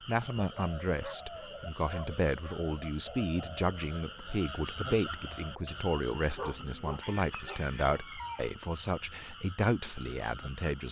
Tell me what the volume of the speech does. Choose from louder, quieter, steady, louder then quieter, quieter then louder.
steady.